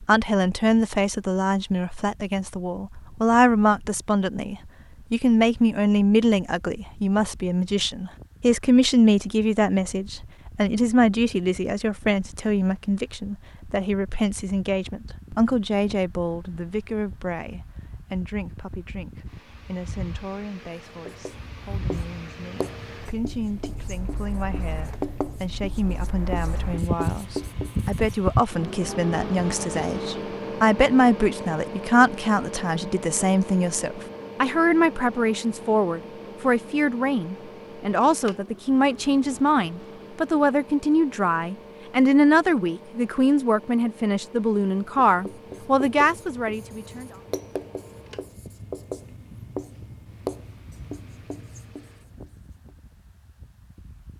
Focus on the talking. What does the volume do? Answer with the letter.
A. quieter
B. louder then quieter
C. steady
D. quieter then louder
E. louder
D.